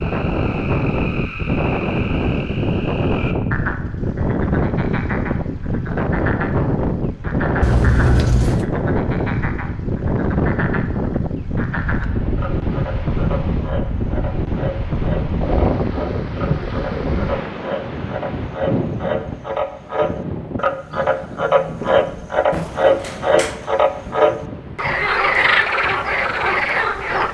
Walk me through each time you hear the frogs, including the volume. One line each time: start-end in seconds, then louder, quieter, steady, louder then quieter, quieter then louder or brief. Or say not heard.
0.0-27.2 louder.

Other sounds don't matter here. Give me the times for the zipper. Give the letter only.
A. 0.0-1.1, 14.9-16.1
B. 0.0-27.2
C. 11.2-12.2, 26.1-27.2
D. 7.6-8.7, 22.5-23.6
D.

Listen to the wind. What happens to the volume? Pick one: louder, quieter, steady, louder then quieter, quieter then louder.
quieter.